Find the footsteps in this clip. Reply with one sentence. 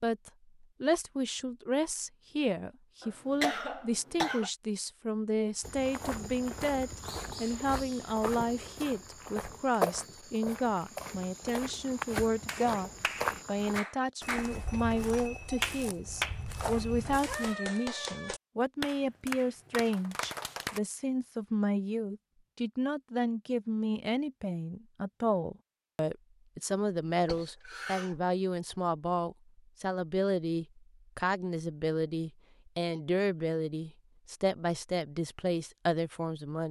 You can hear the footsteps from 5.6 to 17.6 s.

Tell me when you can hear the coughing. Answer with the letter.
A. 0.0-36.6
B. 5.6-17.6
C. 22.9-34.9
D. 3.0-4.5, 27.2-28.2
D.